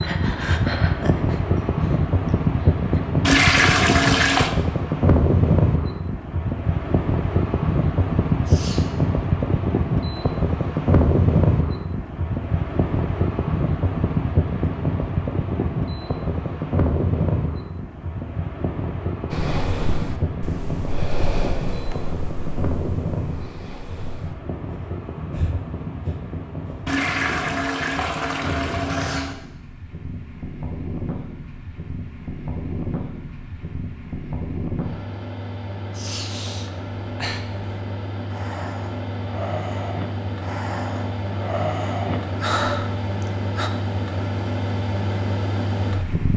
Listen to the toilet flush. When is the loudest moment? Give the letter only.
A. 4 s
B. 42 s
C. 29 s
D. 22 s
A.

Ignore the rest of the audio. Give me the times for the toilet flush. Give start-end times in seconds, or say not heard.
3.2-4.5, 26.9-29.4.